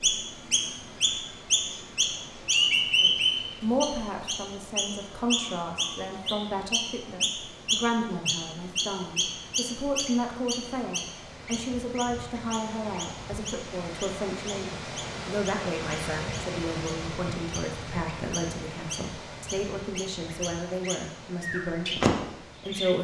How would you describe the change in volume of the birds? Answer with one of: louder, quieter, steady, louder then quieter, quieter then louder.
quieter then louder.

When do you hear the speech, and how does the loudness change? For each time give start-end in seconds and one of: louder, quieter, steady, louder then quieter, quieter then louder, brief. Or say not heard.
3.0-22.9 steady.